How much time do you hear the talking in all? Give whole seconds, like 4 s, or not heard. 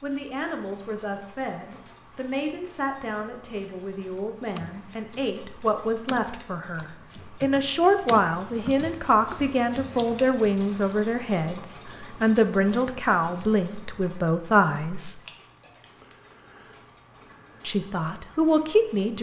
17 s.